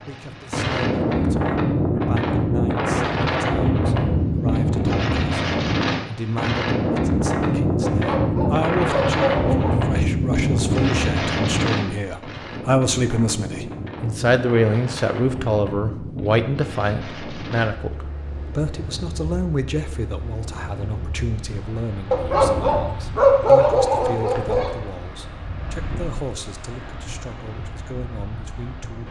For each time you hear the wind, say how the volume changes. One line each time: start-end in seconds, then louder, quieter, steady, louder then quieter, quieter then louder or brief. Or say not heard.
0.0-29.0 quieter.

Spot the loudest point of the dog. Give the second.
23 s.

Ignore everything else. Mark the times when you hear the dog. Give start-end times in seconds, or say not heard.
7.9-9.8, 22.1-24.7.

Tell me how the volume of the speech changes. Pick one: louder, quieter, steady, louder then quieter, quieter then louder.
louder then quieter.